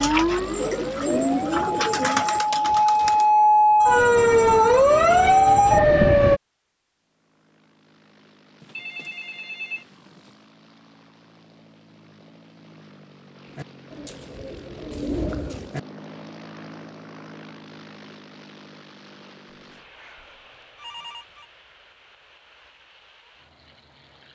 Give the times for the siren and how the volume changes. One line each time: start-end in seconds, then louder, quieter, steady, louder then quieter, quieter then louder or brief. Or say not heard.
0.0-6.4 louder.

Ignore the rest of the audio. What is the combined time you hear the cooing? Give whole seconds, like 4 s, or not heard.
6 s.